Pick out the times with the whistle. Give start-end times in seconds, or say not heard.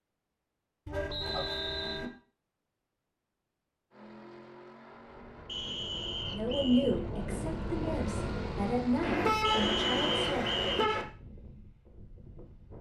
1.1-2.0, 5.5-7.0, 9.4-10.8.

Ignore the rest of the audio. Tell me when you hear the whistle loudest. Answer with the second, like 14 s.
10 s.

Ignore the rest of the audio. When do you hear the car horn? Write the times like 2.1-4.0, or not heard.
0.8-2.1, 9.0-11.1.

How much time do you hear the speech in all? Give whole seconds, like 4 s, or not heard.
4 s.